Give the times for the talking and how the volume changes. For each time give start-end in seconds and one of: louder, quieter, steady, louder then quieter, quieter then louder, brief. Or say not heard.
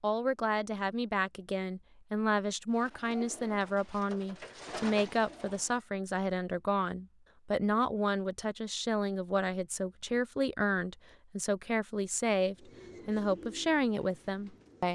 0.0-14.8 steady.